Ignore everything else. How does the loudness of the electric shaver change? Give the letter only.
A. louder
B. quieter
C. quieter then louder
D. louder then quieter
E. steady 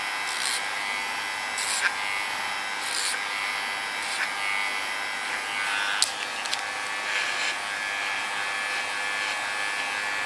E.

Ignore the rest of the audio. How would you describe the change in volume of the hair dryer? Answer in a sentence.
The volume of the hair dryer stays about the same.